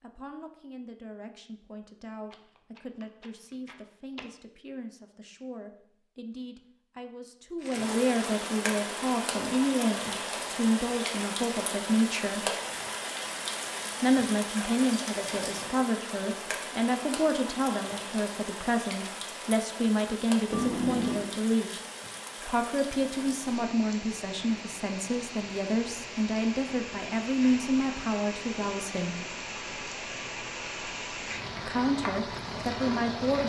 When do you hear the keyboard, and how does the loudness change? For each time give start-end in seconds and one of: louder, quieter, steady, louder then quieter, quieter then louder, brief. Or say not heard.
not heard.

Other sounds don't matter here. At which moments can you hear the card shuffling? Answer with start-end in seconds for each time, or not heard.
2.3-4.2, 20.5-21.3.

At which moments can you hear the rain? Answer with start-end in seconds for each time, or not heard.
7.6-33.4.